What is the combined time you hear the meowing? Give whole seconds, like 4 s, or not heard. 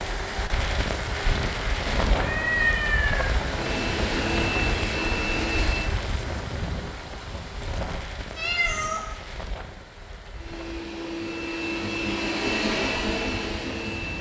2 s.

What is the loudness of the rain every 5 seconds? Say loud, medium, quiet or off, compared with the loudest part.
loud, medium, quiet.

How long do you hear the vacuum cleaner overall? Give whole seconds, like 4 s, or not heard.
6 s.